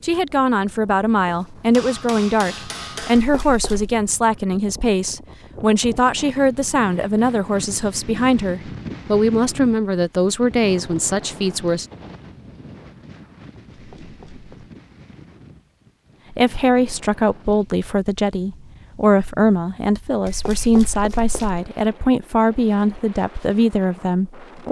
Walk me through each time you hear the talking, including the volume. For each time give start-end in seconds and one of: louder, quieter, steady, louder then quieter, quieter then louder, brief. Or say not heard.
0.0-11.8 steady
16.3-24.6 steady.